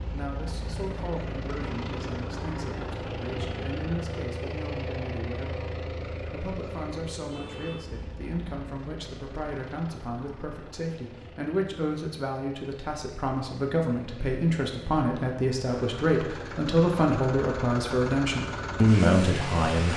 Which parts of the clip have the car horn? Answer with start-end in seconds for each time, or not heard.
7.3-7.9.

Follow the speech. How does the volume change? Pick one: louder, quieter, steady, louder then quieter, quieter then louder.
louder.